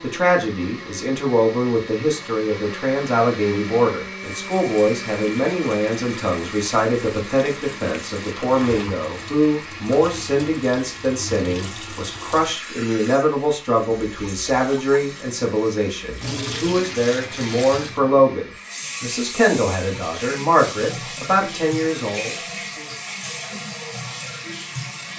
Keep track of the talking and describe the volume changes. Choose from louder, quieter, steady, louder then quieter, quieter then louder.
steady.